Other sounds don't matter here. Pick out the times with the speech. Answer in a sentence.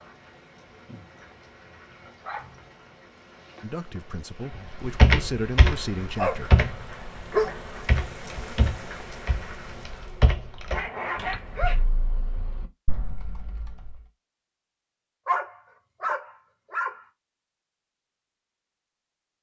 The speech can be heard from 3.6 to 6.7 s.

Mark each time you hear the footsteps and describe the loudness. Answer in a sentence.
The footsteps can't be heard in this clip.